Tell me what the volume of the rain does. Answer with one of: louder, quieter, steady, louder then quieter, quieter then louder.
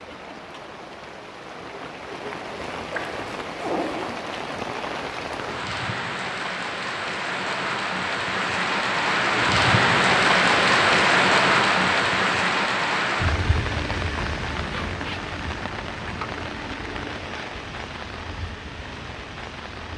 louder then quieter.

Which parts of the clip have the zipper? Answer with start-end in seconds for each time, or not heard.
2.9-4.3, 14.7-15.3.